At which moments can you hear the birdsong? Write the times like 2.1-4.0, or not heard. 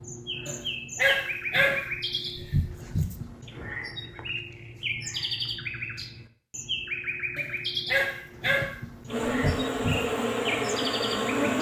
0.0-11.5.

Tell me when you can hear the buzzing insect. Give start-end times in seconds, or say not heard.
9.1-11.5.